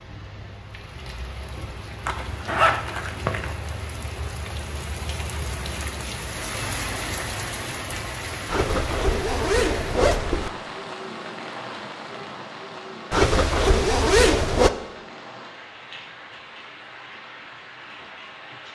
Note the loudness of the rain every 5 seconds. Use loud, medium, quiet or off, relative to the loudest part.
medium, loud, loud, medium.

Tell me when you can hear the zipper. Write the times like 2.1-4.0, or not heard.
2.0-3.5, 8.4-10.5, 13.1-14.7.